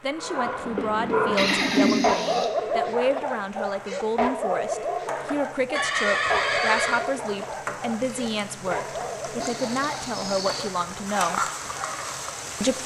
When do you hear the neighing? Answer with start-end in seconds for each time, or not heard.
1.4-2.5, 5.8-7.0, 9.4-10.7.